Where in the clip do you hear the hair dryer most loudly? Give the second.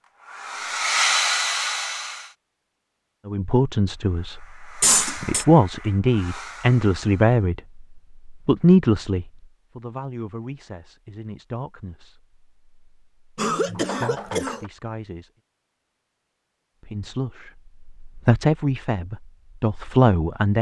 1 s.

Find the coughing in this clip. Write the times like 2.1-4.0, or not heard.
4.8-5.5, 13.3-14.7.